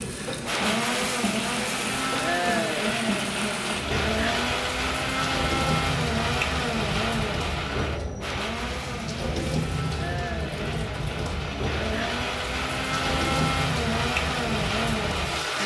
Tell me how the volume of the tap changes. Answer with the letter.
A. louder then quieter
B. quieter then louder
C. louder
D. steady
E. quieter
D.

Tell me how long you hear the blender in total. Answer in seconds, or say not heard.
15 s.